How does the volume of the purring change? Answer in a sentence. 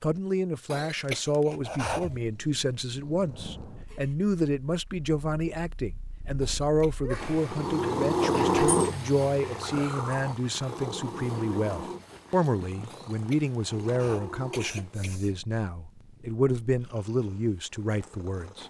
The loudness of the purring goes up, then down.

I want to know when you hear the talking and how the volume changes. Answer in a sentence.
The talking can be heard from 0.0 to 18.6 s, at a steady volume.